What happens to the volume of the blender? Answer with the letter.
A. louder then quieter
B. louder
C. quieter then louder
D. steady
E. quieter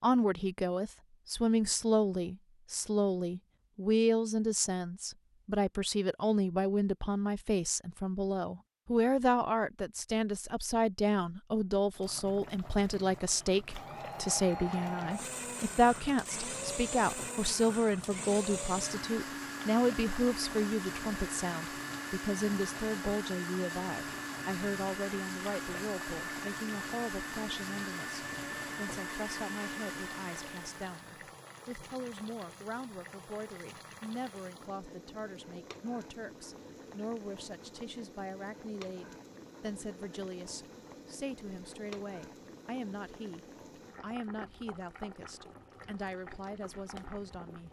D.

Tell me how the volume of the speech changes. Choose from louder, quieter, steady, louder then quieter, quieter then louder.
quieter.